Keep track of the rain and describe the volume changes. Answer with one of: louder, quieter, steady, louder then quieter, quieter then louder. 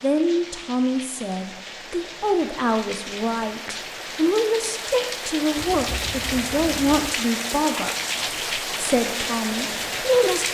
louder.